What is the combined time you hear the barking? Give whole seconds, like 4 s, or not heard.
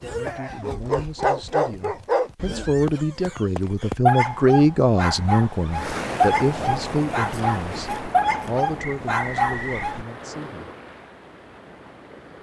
10 s.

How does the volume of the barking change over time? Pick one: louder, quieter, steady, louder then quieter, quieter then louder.
steady.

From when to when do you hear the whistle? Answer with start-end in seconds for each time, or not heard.
8.8-9.9.